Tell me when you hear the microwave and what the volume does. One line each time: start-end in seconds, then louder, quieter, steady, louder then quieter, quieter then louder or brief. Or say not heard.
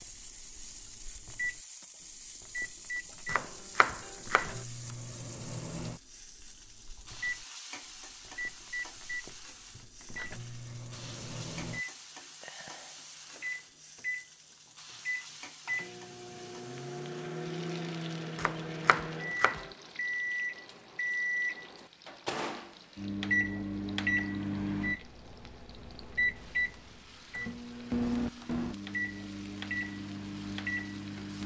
0.0-31.4 louder.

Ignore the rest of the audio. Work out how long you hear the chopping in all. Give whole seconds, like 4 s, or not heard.
3 s.